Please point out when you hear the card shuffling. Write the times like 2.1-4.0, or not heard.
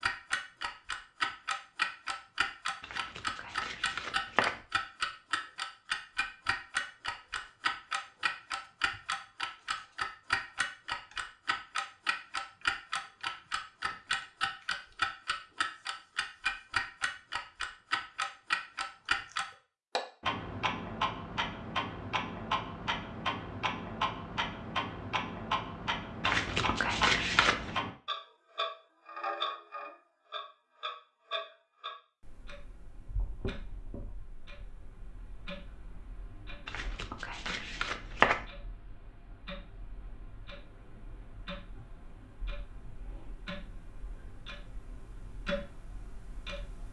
2.8-4.6, 26.2-27.8, 36.6-38.5.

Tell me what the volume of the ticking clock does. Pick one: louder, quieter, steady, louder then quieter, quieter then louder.
quieter.